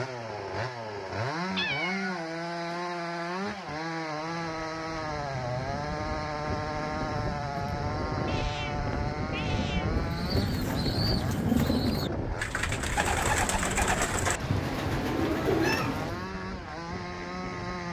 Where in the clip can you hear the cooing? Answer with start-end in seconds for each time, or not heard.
10.0-16.3.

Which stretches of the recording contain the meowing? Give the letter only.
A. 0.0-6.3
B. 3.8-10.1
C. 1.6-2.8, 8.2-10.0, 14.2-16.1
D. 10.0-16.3
C.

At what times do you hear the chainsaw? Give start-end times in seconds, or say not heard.
0.0-17.8.